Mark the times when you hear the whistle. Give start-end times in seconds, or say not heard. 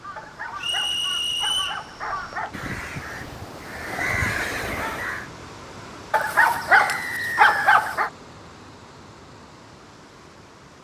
0.6-1.8, 6.8-7.5.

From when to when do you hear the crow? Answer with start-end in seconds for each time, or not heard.
0.0-5.2.